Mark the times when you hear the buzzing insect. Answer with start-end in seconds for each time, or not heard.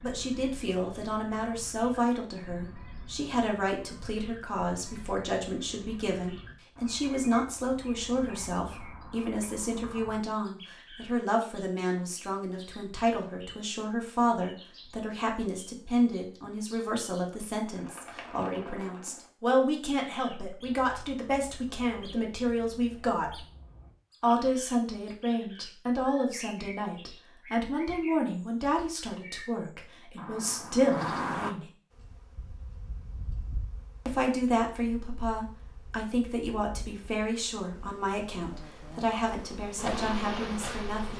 31.9-41.1.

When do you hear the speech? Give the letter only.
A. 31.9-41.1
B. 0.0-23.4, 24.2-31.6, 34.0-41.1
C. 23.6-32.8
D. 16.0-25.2
B.